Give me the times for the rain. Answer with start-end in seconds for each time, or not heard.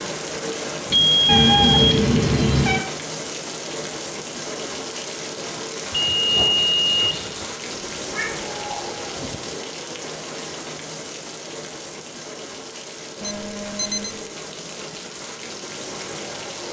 0.0-16.6.